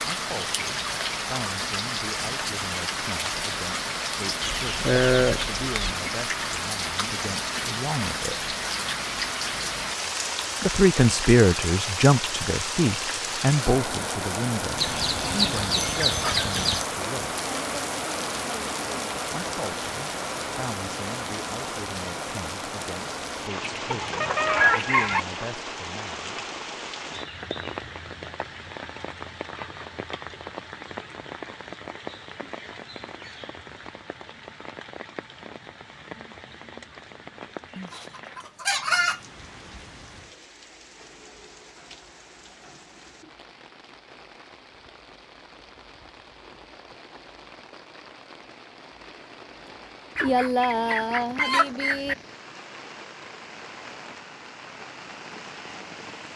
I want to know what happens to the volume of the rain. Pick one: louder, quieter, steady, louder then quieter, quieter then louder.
quieter.